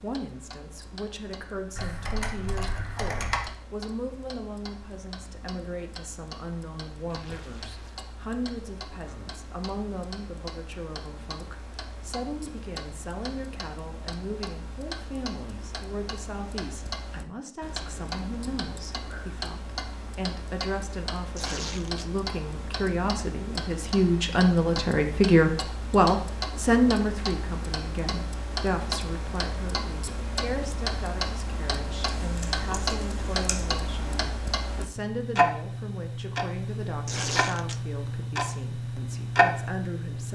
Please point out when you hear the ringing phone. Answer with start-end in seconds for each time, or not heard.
not heard.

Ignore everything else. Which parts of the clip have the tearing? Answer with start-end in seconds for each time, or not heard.
7.1-8.0, 21.4-22.1, 37.0-37.8.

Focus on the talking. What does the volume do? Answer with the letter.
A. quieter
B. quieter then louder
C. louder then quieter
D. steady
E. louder
C.